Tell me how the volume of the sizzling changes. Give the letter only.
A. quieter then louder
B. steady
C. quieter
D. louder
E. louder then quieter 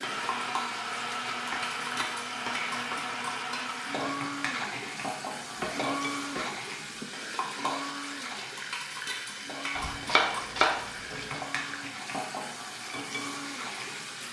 B.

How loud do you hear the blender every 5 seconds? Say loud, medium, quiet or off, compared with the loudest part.
loud, loud, medium.